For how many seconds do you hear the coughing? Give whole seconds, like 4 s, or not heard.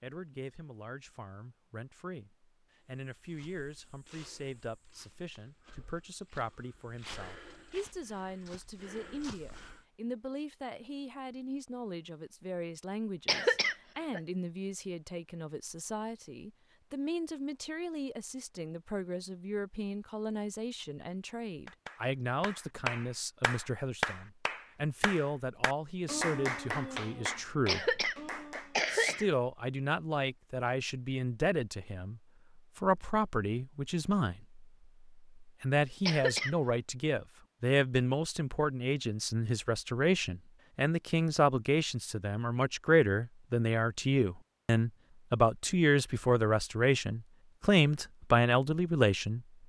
3 s.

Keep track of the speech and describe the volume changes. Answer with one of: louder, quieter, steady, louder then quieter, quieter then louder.
louder.